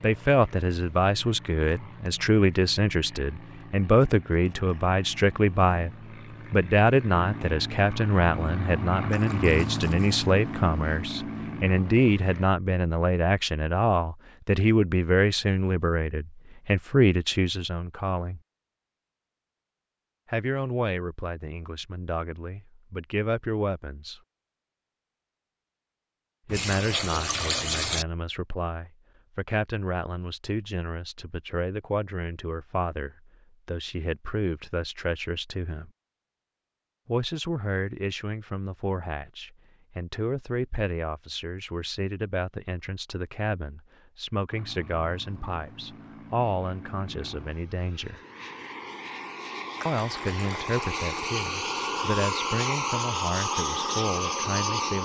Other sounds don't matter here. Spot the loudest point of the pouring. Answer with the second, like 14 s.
28 s.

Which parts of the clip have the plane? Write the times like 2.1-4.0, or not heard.
0.0-12.4, 44.5-55.0.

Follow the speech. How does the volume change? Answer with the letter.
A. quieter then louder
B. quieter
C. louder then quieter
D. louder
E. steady
B.